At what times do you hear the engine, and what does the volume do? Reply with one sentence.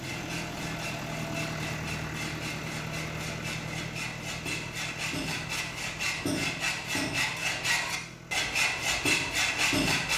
You can hear the engine from 0.0 to 10.1 s, getting quieter.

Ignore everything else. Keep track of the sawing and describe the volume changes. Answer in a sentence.
The volume of the sawing goes up.